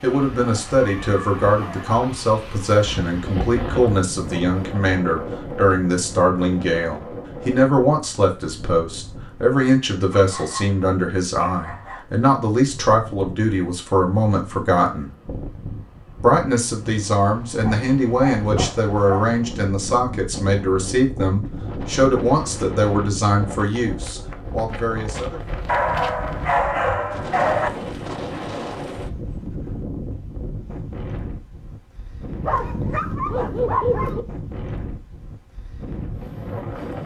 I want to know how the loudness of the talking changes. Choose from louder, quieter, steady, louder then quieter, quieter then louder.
steady.